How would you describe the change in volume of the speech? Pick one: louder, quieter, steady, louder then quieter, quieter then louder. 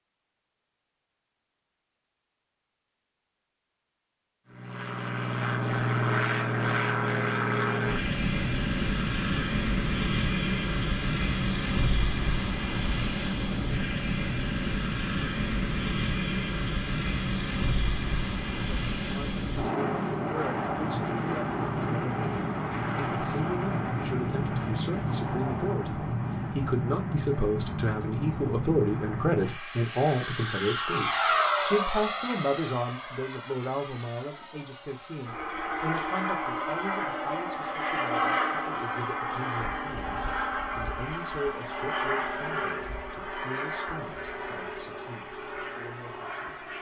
louder then quieter.